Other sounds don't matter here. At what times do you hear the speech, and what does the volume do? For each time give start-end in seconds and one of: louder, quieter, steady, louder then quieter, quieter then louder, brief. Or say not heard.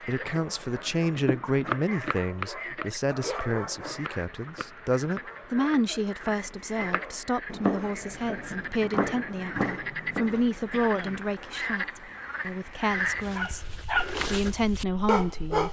0.0-15.6 steady.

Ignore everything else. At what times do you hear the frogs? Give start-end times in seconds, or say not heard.
0.0-15.6.